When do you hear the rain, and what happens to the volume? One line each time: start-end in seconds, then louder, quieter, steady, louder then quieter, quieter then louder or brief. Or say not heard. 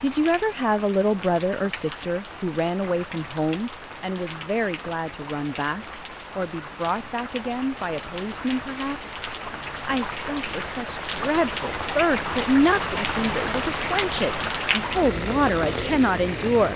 0.0-16.7 louder.